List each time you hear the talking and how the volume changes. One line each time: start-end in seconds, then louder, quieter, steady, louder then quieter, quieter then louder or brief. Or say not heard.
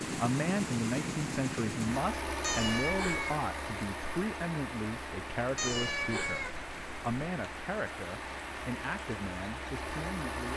0.1-10.5 quieter.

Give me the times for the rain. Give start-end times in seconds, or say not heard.
0.0-10.5.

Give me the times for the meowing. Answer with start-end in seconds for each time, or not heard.
2.4-3.4, 5.5-7.0.